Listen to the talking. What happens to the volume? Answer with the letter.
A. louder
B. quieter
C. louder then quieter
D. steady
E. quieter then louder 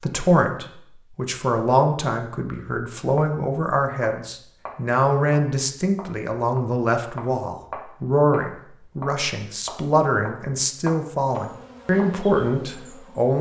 D.